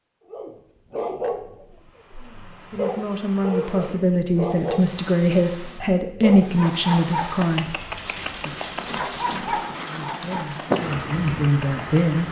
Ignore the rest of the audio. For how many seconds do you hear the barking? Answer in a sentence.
The barking can be heard for 12 seconds in total.